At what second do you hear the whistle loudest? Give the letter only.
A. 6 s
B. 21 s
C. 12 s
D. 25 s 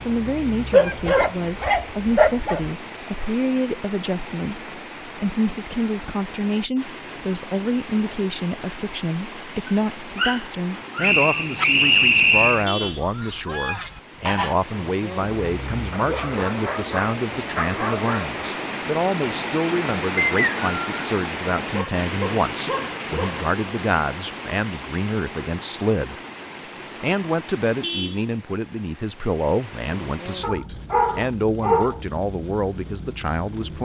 C.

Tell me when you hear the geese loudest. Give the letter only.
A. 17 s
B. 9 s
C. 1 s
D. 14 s
D.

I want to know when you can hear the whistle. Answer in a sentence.
You can hear the whistle from 11.0 to 12.7 s and from 20.1 to 21.0 s.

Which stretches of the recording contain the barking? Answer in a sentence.
The barking can be heard from 0.7 to 2.7 s, from 9.7 to 11.7 s, from 15.9 to 18.4 s, from 21.7 to 23.5 s and from 30.4 to 32.0 s.